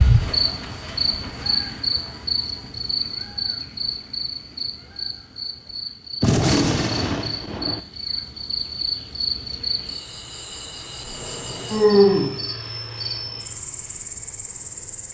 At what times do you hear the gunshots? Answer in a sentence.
You can hear the gunshots from 6.2 to 7.8 s.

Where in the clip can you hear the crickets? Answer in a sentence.
The crickets can be heard from 0.0 to 15.1 s.